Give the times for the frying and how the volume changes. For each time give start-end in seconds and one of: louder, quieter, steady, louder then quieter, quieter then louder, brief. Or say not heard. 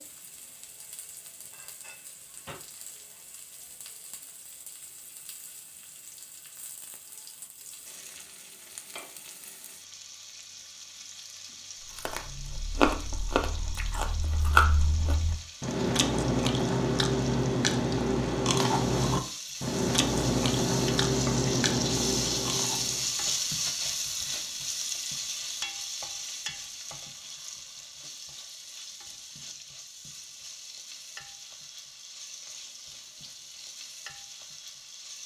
0.0-35.2 louder then quieter.